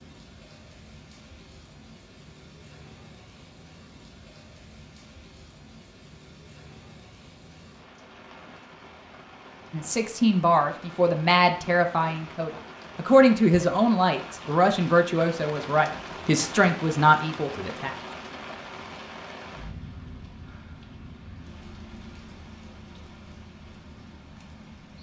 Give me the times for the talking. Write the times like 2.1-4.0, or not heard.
9.7-17.9.